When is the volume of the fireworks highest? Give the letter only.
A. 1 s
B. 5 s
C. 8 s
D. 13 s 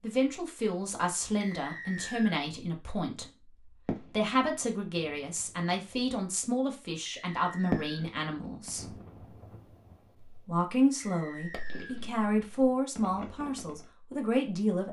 C.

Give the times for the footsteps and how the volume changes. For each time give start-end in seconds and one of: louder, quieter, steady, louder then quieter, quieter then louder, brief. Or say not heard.
not heard.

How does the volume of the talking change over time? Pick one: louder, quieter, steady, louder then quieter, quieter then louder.
steady.